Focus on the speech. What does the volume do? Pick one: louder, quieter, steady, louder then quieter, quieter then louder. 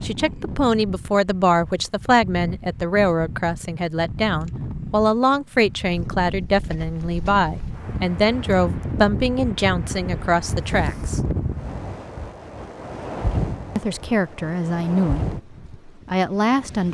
steady.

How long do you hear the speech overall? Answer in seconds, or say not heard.
14 s.